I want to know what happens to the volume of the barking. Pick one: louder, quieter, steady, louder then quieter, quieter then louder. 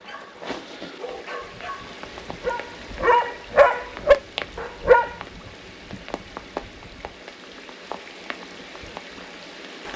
louder.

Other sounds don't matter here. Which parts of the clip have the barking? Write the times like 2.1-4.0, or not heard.
0.0-5.2.